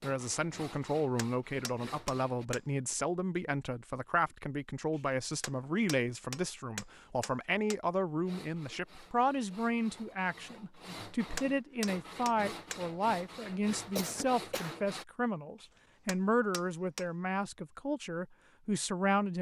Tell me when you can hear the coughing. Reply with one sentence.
The coughing can be heard from 13.9 to 14.8 s.